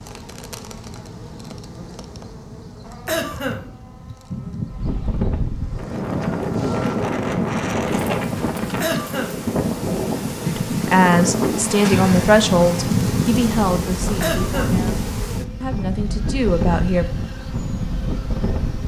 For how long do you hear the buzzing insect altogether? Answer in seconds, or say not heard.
19 s.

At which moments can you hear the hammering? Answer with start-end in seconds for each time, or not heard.
not heard.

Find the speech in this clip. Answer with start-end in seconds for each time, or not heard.
10.4-17.1.